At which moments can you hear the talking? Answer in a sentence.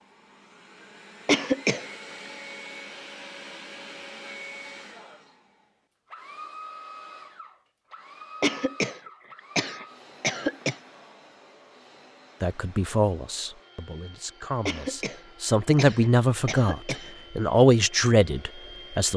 The talking can be heard from 12.4 to 19.1 s.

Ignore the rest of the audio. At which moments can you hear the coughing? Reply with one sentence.
You can hear the coughing from 1.2 to 1.9 s, from 8.4 to 10.8 s and from 14.7 to 17.1 s.